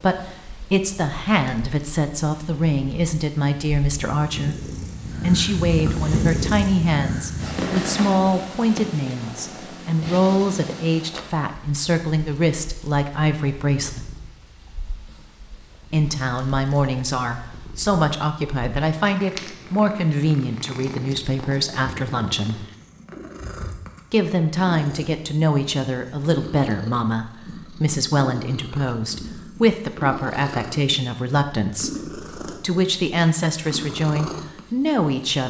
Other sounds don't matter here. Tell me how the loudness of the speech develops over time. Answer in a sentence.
The volume of the speech stays about the same.